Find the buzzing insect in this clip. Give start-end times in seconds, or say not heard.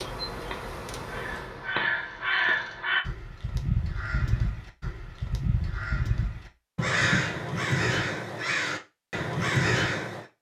0.0-2.9.